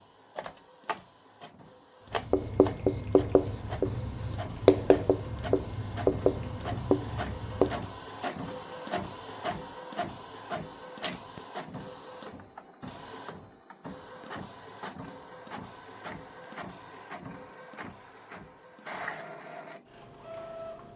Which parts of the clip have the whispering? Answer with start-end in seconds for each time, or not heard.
not heard.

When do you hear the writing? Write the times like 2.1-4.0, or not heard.
2.1-8.0.